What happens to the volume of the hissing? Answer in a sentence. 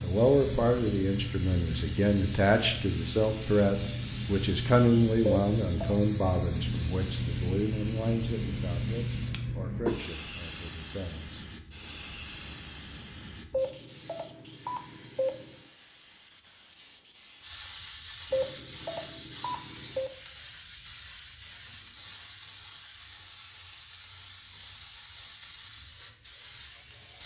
The loudness of the hissing goes down.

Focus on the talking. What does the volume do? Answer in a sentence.
The loudness of the talking goes down.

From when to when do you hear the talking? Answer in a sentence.
You can hear the talking from 0.0 to 11.4 s.